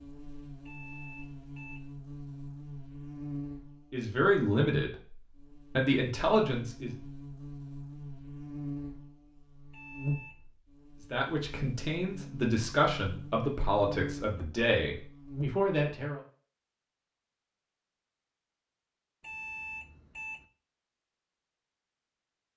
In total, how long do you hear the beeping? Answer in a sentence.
You can hear the beeping for 3 seconds altogether.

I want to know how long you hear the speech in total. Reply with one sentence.
You can hear the speech for 8 seconds altogether.